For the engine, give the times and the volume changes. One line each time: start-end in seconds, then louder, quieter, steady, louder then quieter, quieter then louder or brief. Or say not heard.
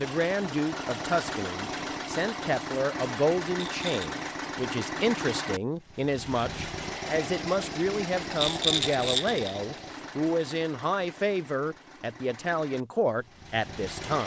0.0-14.2 quieter.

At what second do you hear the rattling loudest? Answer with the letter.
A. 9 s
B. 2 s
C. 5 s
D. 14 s
A.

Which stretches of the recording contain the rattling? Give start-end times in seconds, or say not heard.
3.6-4.1, 8.3-9.6.